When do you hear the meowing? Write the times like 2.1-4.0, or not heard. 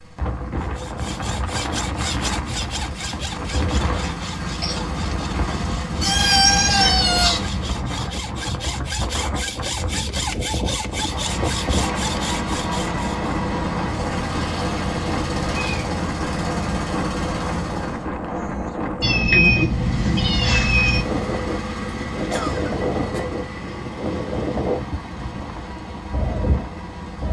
6.0-7.4, 14.3-15.9, 19.0-21.1.